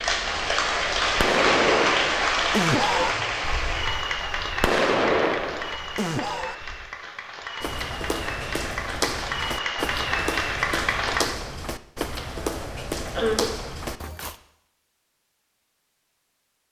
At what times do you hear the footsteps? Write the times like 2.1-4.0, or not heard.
7.6-14.3.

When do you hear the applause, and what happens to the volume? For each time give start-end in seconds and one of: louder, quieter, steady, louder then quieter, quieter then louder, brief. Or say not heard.
0.0-11.4 quieter then louder.